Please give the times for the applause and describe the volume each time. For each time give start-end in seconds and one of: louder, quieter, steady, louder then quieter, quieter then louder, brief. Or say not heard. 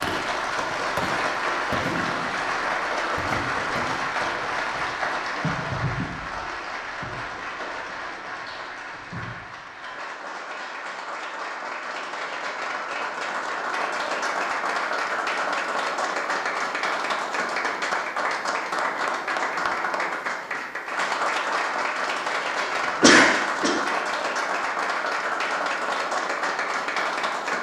0.0-27.5 quieter then louder.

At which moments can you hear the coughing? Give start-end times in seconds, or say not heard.
22.6-23.8.